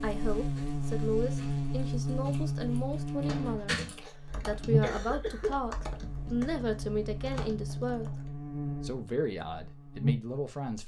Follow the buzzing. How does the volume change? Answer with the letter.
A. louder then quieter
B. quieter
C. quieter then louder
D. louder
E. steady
B.